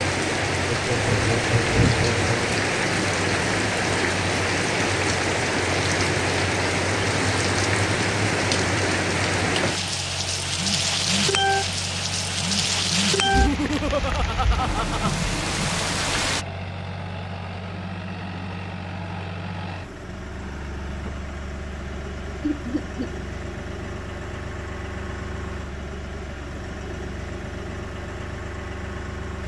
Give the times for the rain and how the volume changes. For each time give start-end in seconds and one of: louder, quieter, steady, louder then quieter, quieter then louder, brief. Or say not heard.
0.0-16.4 steady.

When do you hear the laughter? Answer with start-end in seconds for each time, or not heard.
0.7-2.5, 13.2-15.1, 22.4-23.1.